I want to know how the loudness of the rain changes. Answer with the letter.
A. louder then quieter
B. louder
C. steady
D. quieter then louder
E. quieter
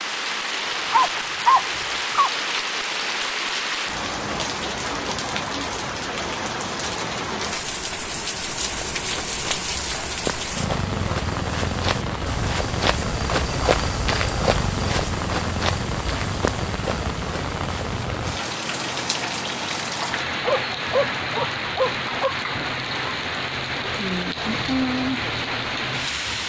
C.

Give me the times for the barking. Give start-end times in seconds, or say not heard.
0.9-2.3, 20.4-22.4.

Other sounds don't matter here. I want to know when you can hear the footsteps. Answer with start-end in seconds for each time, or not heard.
8.6-18.1.